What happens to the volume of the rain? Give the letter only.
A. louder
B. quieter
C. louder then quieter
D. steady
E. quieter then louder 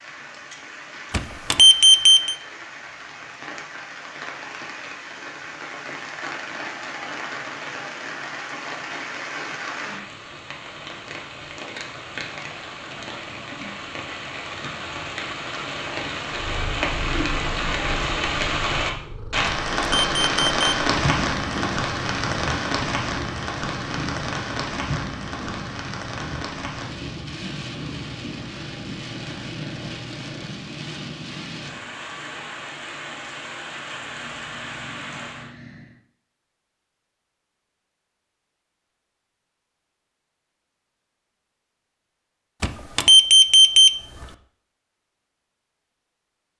C.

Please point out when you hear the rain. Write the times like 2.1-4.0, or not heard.
0.0-35.5.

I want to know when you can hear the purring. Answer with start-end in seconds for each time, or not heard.
16.3-36.0.